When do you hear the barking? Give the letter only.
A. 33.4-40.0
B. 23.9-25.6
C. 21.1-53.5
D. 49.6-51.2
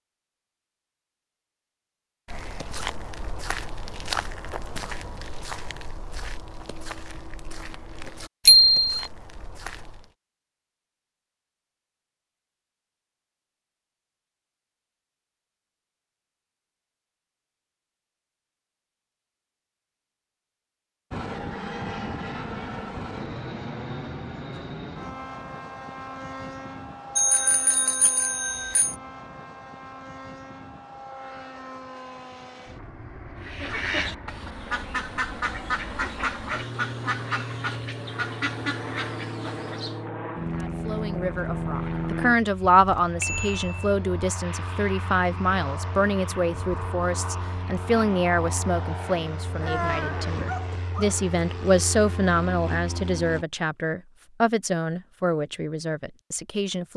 D.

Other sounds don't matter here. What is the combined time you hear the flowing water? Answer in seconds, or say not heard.
not heard.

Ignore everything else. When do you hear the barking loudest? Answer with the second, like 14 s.
50 s.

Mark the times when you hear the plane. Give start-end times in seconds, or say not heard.
21.1-53.5.